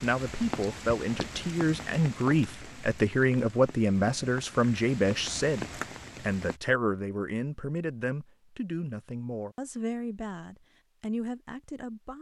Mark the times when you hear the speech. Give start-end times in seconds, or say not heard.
0.0-12.1.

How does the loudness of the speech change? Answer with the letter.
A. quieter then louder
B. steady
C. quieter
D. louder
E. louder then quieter
C.